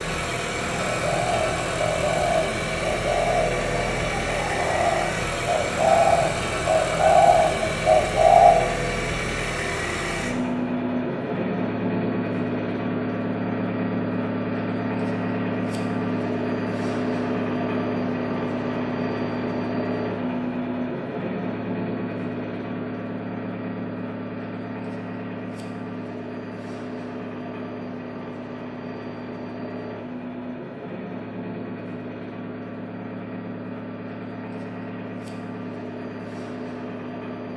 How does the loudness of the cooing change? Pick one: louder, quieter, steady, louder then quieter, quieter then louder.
louder.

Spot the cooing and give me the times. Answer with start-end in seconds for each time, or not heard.
0.8-8.7.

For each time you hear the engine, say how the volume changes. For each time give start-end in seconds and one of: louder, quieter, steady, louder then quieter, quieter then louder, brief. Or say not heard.
0.0-37.5 quieter.